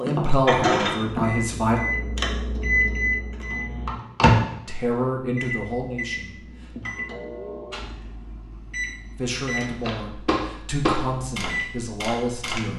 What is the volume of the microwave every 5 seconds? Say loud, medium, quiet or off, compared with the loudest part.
loud, medium, medium.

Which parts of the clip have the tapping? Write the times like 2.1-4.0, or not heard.
0.0-1.6, 9.8-12.7.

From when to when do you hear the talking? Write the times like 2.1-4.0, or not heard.
0.0-1.8, 4.7-6.7, 9.2-12.7.